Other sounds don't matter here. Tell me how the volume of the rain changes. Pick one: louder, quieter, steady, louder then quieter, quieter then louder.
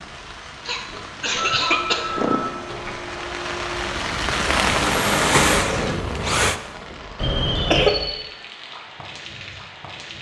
louder then quieter.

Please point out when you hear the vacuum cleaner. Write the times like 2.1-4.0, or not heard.
1.9-6.6.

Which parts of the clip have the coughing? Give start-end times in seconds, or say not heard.
0.7-2.5, 7.2-8.0.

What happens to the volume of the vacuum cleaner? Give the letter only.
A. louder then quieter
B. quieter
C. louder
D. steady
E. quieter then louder
C.